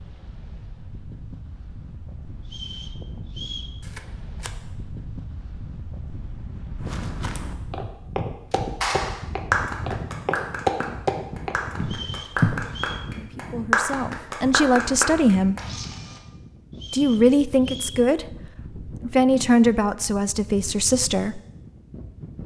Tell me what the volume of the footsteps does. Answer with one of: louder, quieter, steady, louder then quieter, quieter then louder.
louder then quieter.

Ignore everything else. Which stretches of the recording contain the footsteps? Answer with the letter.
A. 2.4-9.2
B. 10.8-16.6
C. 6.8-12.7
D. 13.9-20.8
C.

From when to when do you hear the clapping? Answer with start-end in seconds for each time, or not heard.
8.8-15.7.